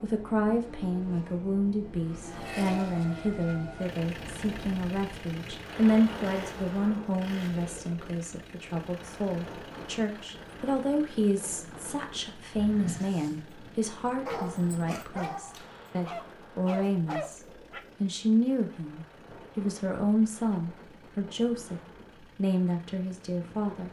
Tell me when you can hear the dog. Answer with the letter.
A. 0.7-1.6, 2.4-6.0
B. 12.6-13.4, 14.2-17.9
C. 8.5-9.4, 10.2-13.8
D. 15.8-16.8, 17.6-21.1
B.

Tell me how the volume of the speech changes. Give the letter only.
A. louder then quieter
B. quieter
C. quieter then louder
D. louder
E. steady
E.